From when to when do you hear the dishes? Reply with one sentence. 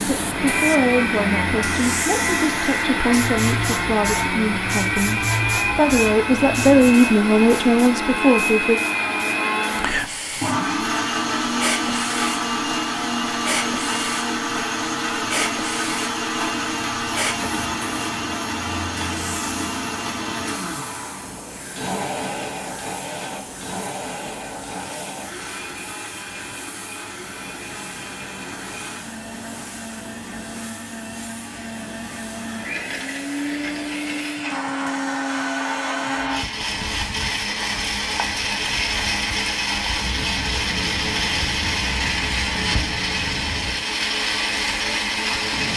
You can't hear the dishes here.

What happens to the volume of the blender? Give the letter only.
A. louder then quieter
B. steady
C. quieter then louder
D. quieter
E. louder
C.